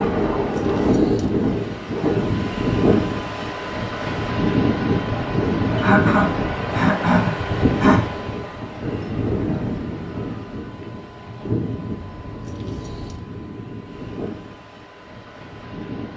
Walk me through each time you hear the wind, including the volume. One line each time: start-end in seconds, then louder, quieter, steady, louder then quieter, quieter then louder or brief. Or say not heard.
0.0-16.1 quieter.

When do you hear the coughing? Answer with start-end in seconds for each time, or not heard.
5.8-8.1.